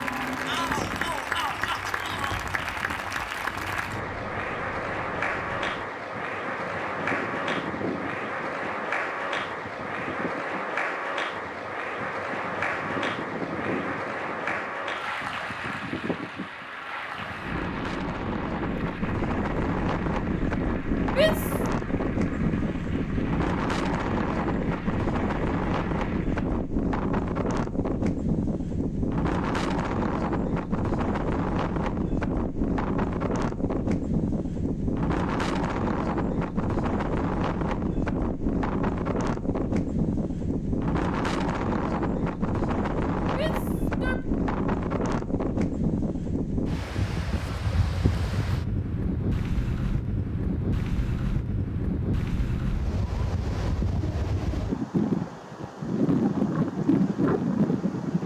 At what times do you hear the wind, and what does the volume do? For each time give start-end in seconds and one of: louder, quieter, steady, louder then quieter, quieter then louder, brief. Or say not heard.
0.0-58.2 louder.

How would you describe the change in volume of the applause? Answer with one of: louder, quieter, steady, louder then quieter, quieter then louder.
quieter.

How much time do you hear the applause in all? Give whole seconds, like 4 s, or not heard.
27 s.